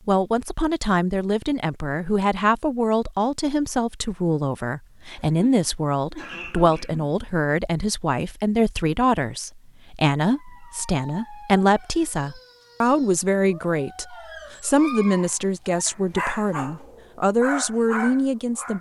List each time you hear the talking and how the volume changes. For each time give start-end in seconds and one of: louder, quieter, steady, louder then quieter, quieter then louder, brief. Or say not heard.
0.1-18.7 steady.